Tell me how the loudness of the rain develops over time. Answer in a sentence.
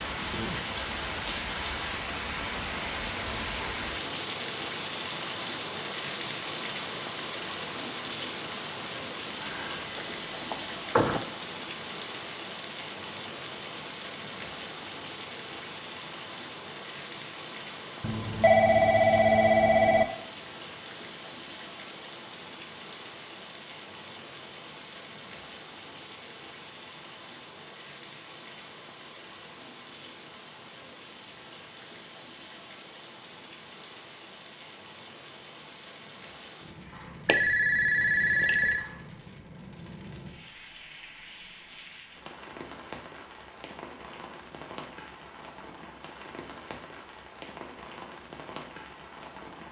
The loudness of the rain goes down.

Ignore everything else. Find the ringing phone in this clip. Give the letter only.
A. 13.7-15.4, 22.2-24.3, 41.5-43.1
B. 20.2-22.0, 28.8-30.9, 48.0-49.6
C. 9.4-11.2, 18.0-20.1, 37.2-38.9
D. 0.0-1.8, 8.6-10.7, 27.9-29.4
C.